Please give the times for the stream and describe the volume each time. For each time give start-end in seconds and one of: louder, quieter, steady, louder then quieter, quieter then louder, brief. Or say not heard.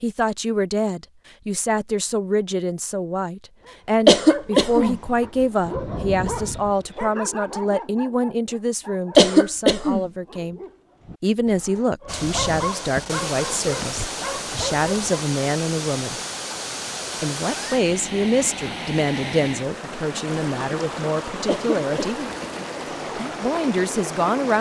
12.1-24.5 steady.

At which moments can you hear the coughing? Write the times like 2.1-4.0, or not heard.
4.0-5.0, 9.2-10.1, 21.4-22.2.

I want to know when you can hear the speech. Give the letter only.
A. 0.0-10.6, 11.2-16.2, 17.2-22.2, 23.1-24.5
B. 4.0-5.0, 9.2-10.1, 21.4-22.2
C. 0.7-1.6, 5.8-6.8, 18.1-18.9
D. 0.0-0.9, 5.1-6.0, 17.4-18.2
A.